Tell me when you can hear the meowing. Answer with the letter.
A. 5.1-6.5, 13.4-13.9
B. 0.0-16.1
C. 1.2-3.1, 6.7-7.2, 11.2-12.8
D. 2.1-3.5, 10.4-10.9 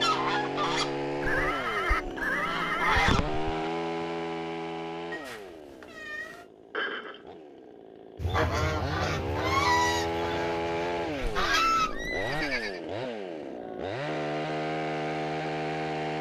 A.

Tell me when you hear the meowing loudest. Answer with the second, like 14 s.
6 s.